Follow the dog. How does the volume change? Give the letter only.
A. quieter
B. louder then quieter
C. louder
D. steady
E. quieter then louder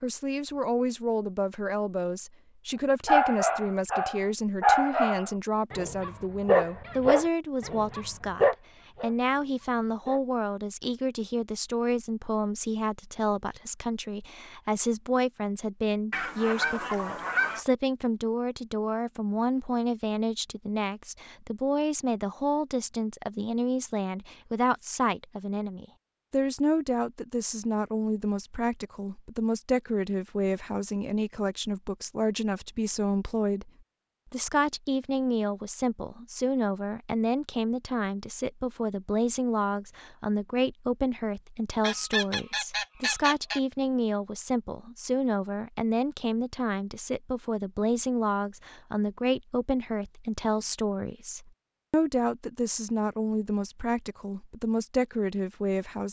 A.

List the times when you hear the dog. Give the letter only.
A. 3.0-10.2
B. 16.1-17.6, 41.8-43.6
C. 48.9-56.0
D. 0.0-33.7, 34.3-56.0
A.